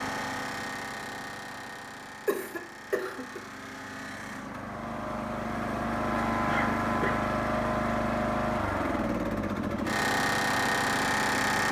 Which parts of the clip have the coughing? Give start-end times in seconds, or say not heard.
2.2-3.4, 6.5-7.2.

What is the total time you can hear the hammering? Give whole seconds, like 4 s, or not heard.
not heard.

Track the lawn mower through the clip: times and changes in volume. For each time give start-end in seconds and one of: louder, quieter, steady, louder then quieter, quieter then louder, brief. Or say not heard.
0.0-11.6 louder.